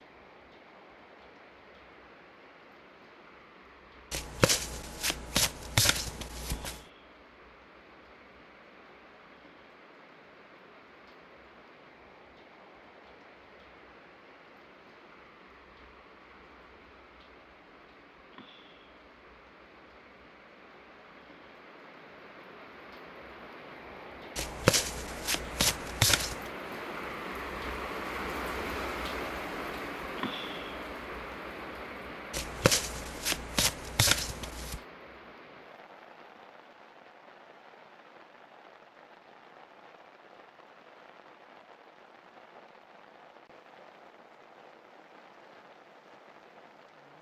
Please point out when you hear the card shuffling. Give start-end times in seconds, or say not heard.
4.1-6.8, 24.4-26.5, 32.3-34.8.